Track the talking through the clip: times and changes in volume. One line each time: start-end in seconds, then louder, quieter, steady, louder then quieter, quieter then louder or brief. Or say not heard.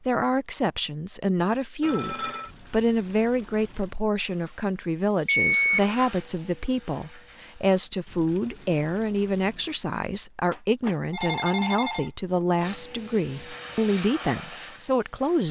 0.1-15.4 steady.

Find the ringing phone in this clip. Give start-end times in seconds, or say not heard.
1.8-2.5, 5.2-5.8, 10.5-12.1.